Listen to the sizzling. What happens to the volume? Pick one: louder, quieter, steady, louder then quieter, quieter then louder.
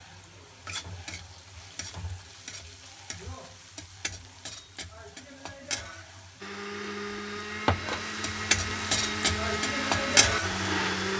louder.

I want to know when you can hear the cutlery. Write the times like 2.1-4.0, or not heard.
not heard.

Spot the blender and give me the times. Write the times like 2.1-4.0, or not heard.
6.4-11.1.